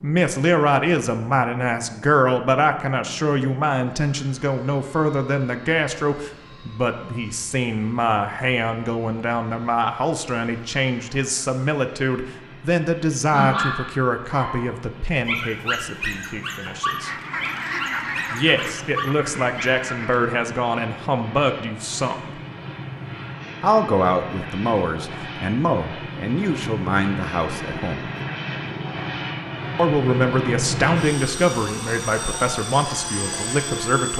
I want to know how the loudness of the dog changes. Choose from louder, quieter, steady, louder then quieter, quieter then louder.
steady.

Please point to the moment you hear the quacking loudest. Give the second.
18 s.